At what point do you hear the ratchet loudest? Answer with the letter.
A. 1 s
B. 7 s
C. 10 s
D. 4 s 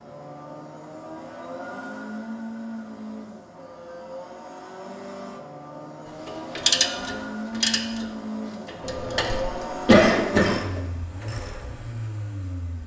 B.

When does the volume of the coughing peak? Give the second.
10 s.